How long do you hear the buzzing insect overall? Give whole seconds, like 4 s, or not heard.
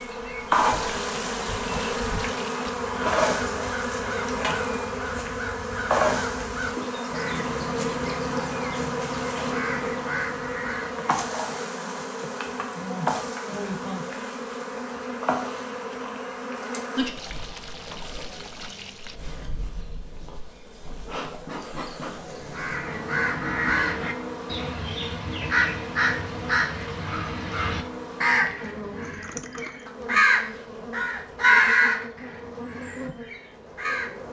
34 s.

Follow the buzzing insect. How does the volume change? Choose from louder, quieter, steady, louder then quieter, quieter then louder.
quieter.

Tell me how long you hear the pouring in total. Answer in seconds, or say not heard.
5 s.